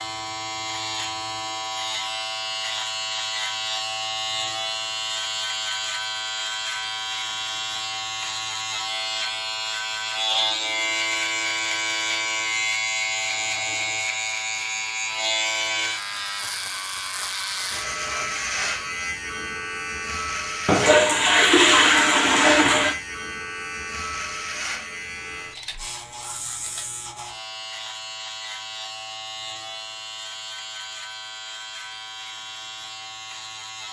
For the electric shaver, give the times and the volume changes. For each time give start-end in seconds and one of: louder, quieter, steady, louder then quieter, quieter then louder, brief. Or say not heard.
0.0-33.8 quieter.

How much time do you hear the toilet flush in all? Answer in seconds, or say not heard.
2 s.